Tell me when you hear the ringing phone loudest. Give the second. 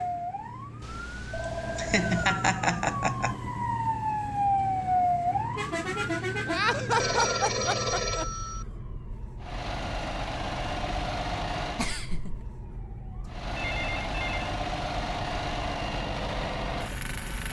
8 s.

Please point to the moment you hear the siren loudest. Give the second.
5 s.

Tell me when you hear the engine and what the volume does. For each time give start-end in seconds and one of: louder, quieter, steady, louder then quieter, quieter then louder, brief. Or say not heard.
9.4-11.9 brief
13.2-17.4 steady.